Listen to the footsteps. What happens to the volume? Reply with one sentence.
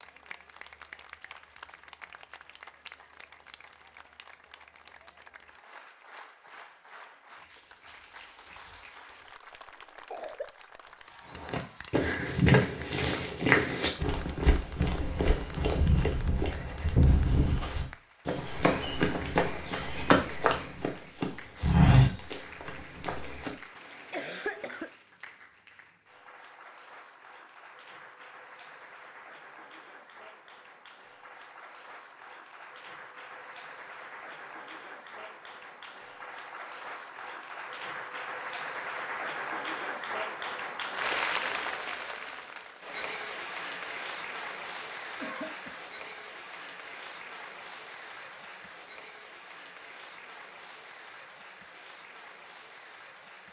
The loudness of the footsteps goes down, then up.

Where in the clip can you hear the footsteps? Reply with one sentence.
The footsteps can be heard from 11.3 to 23.5 s.